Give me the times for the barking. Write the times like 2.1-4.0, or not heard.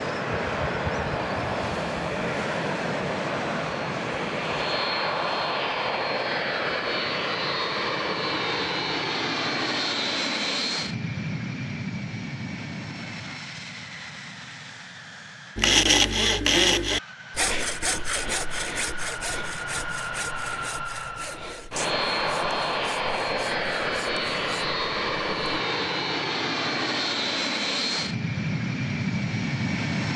not heard.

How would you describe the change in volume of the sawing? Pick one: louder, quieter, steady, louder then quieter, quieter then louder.
quieter.